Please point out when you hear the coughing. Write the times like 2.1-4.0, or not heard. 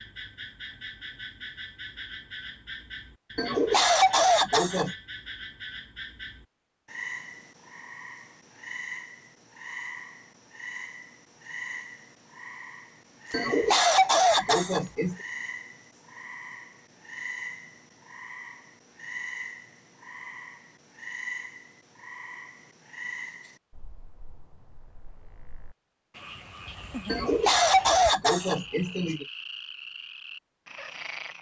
3.4-5.0, 13.3-15.2, 27.1-29.2.